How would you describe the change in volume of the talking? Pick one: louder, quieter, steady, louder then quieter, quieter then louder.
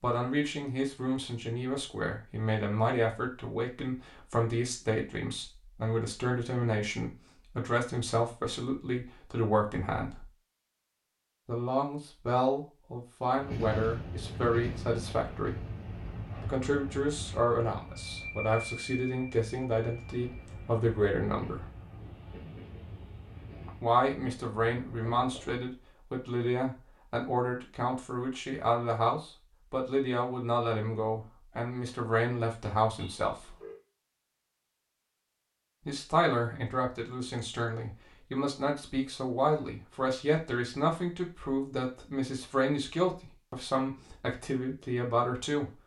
steady.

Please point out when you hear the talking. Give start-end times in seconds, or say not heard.
0.0-10.2, 11.4-15.6, 16.4-21.6, 23.8-33.5, 35.9-45.7.